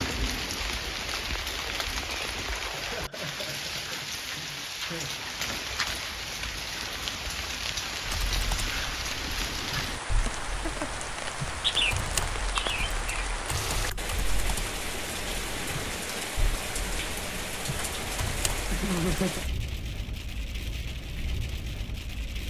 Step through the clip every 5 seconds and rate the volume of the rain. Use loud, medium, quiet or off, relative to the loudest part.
loud, loud, loud, loud, medium.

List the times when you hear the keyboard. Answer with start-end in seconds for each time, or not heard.
8.0-19.2.